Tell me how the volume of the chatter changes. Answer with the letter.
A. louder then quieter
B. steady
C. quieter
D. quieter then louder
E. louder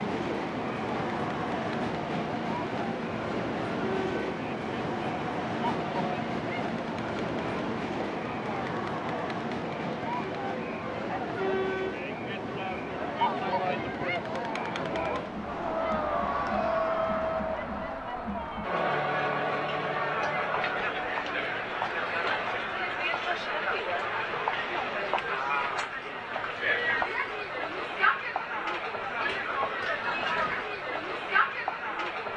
E.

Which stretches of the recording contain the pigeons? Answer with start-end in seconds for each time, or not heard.
not heard.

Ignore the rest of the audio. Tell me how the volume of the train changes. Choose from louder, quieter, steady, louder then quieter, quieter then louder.
quieter.